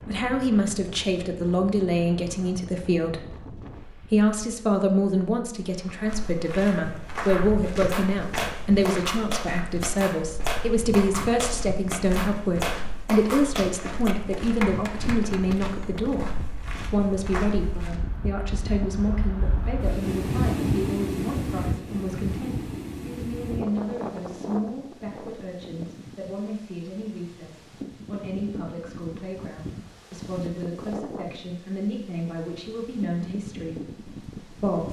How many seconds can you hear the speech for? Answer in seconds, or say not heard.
35 s.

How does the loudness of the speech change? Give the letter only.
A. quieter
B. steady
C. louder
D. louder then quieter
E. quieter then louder
A.